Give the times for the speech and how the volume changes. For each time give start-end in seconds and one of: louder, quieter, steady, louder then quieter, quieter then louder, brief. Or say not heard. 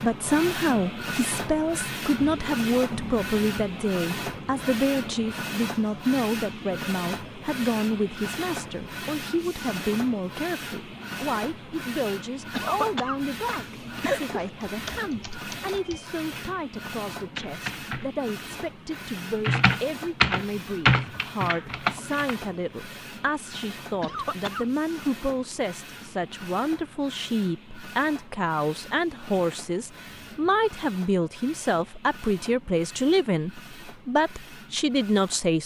0.0-35.6 quieter then louder.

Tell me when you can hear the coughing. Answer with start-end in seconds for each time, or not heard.
12.5-14.5, 24.0-24.7.